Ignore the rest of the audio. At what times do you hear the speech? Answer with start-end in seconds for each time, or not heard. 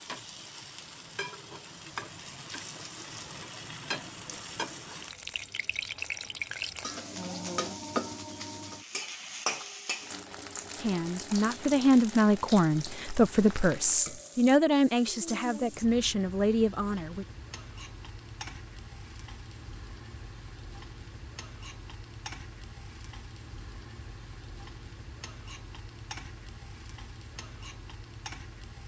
10.8-17.2.